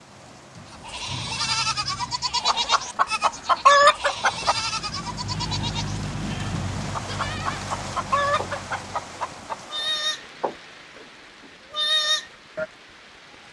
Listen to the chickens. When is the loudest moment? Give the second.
4 s.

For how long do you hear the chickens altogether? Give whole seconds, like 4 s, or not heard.
5 s.